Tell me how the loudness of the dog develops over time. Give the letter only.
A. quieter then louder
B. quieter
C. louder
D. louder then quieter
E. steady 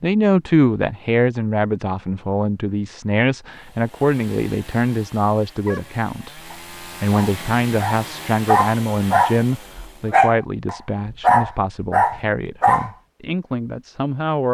C.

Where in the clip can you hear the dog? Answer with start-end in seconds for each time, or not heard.
5.7-12.9.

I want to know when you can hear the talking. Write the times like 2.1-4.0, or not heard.
0.0-14.4.